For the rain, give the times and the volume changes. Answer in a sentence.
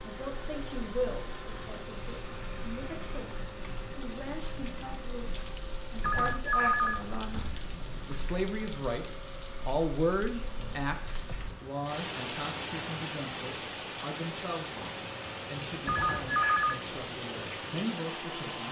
The rain can be heard from 0.0 to 18.6 s, getting louder.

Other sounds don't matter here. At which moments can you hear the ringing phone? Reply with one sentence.
You can hear the ringing phone from 6.0 to 7.7 s and from 15.8 to 16.8 s.